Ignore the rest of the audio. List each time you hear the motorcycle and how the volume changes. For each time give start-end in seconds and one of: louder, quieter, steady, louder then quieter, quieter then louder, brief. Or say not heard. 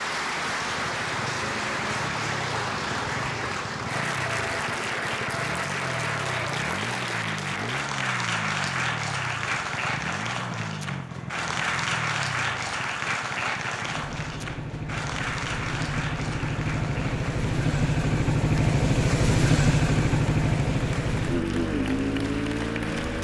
0.0-23.1 louder.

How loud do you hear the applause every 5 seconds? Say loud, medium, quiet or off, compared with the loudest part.
loud, loud, loud, medium, medium.